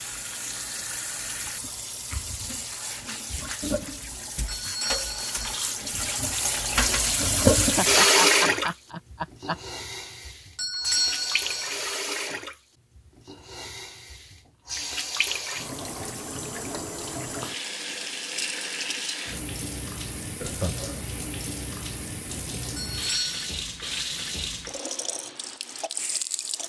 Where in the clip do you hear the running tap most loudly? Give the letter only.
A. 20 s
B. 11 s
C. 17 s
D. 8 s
D.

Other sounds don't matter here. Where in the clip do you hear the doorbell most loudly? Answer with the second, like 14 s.
11 s.